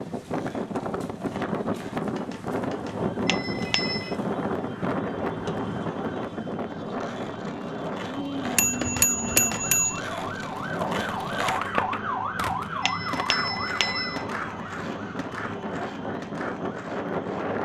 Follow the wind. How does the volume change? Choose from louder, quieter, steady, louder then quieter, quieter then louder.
quieter then louder.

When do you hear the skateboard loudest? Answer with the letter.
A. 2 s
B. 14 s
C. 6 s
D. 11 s
D.